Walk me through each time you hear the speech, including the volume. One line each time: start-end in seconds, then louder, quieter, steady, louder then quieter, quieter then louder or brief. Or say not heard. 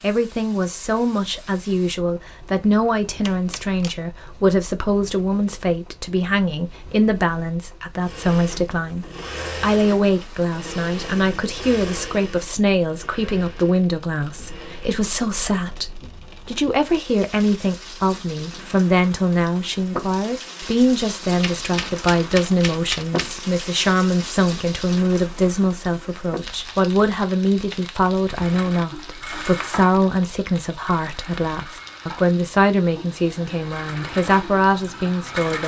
0.0-35.6 steady.